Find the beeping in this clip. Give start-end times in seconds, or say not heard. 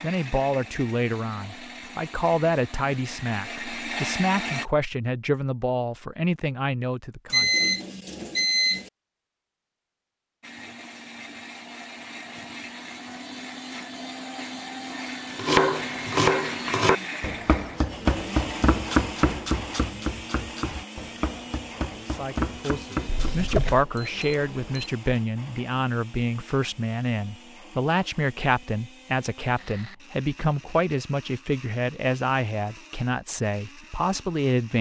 7.3-8.9, 23.1-24.9.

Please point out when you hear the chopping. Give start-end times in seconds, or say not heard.
15.3-23.8.